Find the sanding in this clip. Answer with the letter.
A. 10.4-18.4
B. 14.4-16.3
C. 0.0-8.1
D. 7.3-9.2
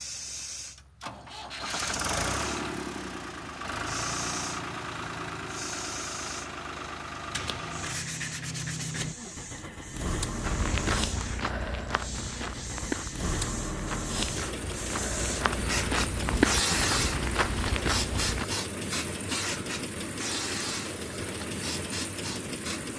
D.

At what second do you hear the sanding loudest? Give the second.
9 s.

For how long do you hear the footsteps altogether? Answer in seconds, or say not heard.
8 s.